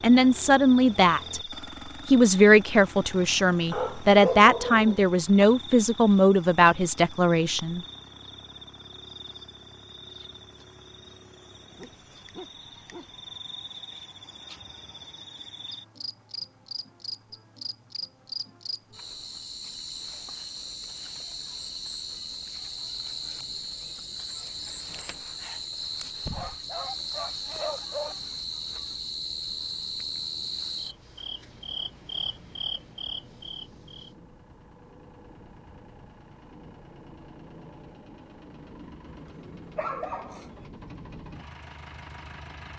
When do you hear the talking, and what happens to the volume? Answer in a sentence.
You can hear the talking briefly from 0.0 to 1.4 s; and from 2.0 to 7.8 s, at a steady volume.